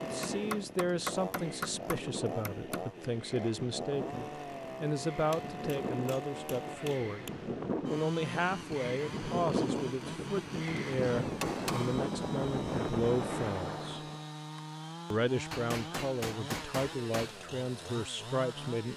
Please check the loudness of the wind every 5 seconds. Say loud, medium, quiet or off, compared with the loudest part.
medium, loud, loud, off.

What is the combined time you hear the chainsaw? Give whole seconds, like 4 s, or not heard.
19 s.